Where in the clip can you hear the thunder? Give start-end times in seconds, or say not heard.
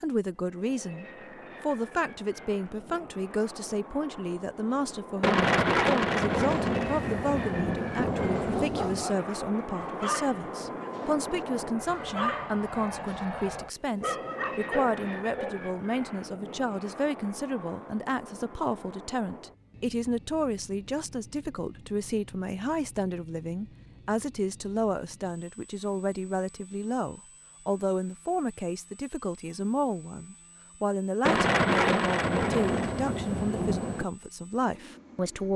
5.2-9.1, 31.2-34.0.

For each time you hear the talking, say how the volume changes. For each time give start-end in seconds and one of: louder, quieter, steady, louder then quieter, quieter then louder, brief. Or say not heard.
0.0-35.5 steady.